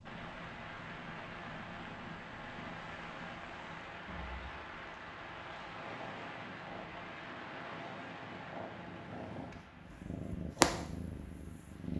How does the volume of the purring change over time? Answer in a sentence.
The loudness of the purring goes up.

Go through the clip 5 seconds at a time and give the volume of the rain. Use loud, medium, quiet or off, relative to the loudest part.
loud, loud, quiet.